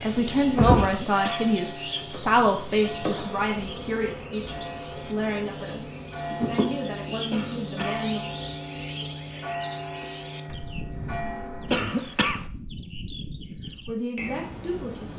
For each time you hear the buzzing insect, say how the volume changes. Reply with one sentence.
You can hear the buzzing insect from 0.0 to 11.9 s, getting quieter.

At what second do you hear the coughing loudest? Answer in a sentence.
The loudest moment of the coughing is at 12 seconds.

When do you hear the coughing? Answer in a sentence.
The coughing can be heard from 0.8 to 1.6 s, from 7.3 to 8.1 s and from 11.7 to 12.4 s.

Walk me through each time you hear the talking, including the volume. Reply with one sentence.
The talking can be heard from 0.0 to 8.2 s, getting quieter; and briefly from 13.8 to 15.1 s.